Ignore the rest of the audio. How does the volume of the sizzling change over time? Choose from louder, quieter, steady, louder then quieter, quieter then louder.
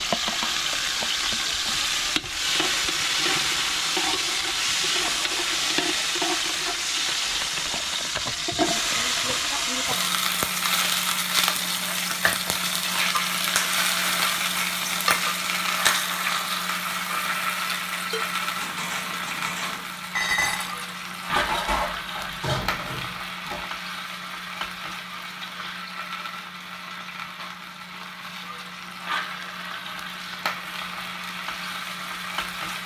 quieter.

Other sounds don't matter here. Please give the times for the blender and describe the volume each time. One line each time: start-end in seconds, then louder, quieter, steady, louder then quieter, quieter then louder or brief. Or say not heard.
not heard.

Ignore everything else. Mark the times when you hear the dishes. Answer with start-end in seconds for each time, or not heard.
18.1-23.7.